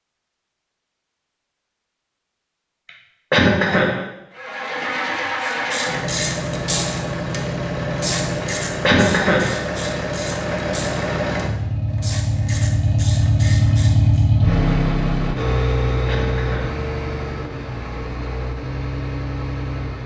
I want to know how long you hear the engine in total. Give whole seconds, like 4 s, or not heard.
16 s.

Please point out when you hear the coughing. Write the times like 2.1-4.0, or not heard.
3.3-4.0, 8.8-9.6, 16.1-16.8.